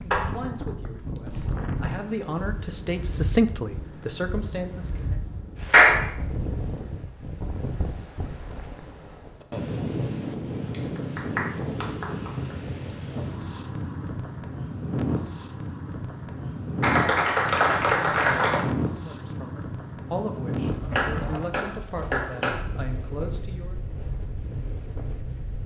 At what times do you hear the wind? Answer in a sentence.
The wind can be heard from 0.0 to 25.6 s.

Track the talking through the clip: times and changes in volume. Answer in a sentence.
The talking can be heard from 0.0 to 5.2 s, getting louder then quieter; and from 18.9 to 23.8 s, at a steady volume.